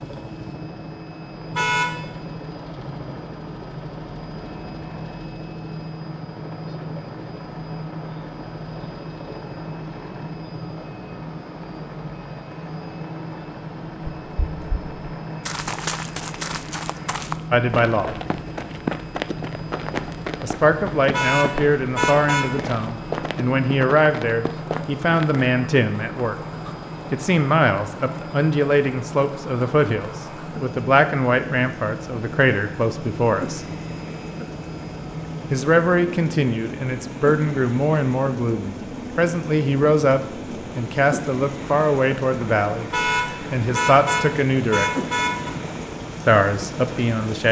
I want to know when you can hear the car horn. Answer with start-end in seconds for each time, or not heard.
1.6-2.0, 21.1-22.6, 42.9-45.5.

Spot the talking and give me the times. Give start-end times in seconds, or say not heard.
17.5-18.1, 20.4-26.4, 27.1-33.6, 35.5-44.9, 46.2-47.4.